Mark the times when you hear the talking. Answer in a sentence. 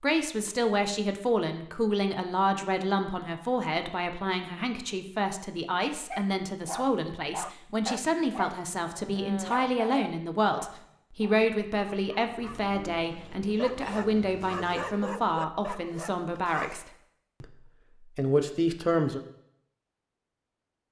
You can hear the talking from 0.0 to 19.2 s.